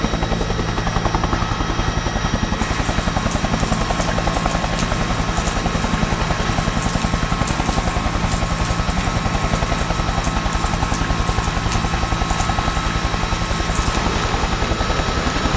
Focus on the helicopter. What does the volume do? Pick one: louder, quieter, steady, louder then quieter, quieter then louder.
steady.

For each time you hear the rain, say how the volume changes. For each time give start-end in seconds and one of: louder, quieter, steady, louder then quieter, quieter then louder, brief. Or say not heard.
2.5-15.5 steady.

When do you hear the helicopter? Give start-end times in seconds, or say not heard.
0.0-15.5.